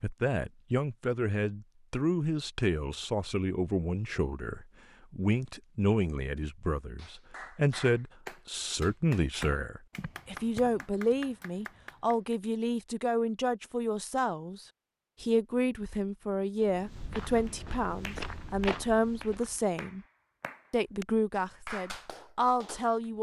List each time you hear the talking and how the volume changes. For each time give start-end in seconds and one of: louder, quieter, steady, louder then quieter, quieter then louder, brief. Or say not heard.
0.0-20.1 steady
20.7-23.1 brief.